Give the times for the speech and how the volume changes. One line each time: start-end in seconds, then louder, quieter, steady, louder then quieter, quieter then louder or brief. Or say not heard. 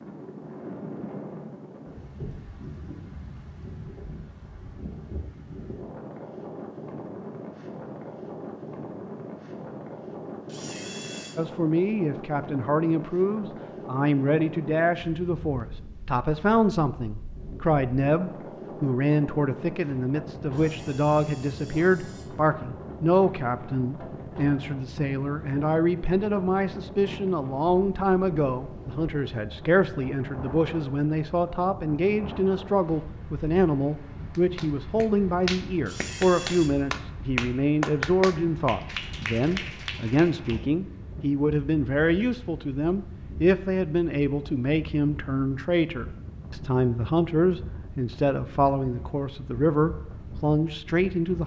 11.3-51.4 steady.